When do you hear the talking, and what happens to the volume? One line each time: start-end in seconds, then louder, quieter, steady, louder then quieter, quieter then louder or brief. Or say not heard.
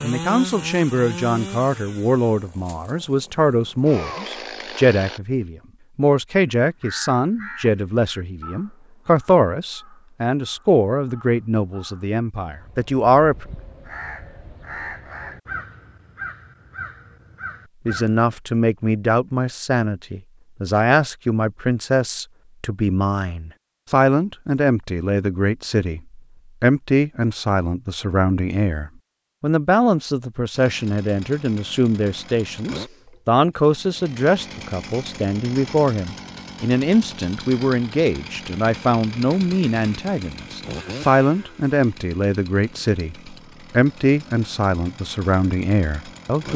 0.0-13.4 steady
17.9-46.5 steady.